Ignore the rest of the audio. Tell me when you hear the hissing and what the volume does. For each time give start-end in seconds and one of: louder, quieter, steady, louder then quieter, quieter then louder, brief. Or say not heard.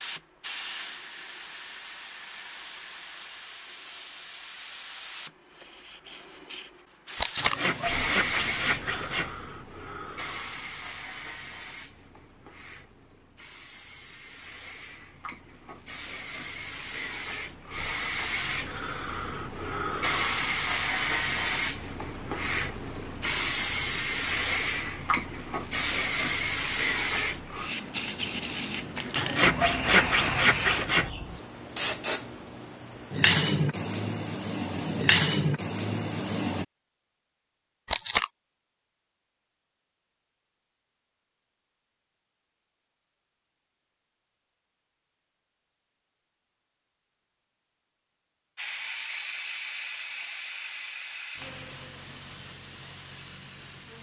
0.0-36.6 louder
48.5-53.9 quieter.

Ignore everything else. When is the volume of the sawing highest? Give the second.
30 s.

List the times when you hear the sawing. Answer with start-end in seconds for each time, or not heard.
7.3-9.3, 29.1-31.1.